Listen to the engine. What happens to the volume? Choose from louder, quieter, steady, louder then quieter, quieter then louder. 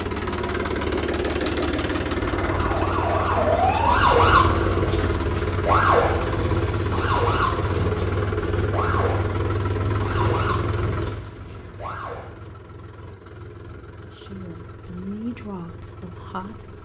quieter.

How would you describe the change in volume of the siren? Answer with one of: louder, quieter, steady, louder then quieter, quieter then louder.
quieter.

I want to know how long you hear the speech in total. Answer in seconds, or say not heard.
3 s.